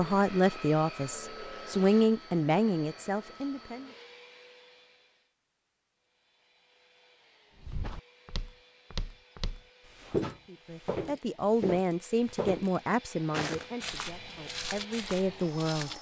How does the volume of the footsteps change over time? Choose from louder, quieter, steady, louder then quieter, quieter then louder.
louder then quieter.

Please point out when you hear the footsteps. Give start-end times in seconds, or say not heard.
7.5-15.9.